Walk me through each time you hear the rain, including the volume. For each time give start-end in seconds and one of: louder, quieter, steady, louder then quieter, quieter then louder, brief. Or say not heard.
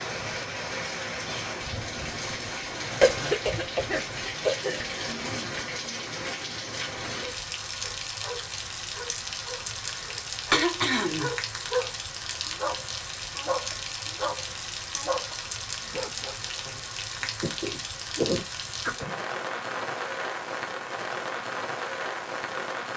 0.0-22.9 steady.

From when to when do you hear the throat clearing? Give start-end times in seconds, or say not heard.
3.0-5.5, 9.7-11.3, 16.6-19.1.